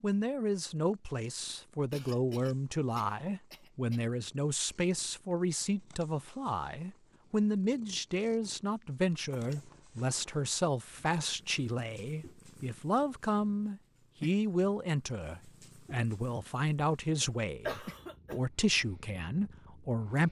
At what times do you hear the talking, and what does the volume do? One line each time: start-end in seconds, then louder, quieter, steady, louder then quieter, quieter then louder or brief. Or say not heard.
0.0-20.2 steady.